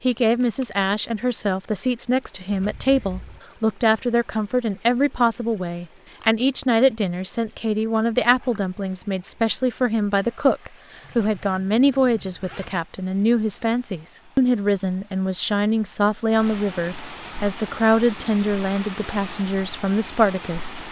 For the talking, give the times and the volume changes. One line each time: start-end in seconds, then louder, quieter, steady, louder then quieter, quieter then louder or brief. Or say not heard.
0.0-20.8 steady.